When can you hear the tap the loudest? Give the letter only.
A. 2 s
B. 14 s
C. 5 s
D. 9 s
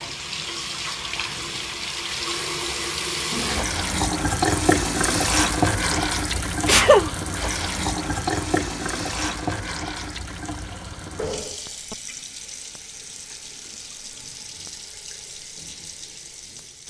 C.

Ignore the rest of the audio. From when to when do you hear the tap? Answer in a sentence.
You can hear the tap from 0.0 to 16.8 s.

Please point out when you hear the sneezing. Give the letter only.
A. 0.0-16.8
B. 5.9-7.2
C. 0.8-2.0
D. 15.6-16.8
B.